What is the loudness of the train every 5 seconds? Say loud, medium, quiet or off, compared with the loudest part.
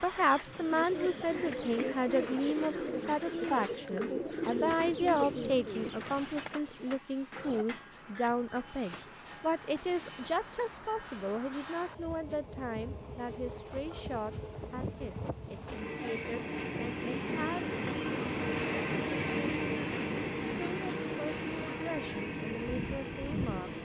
quiet, quiet, medium, loud, loud.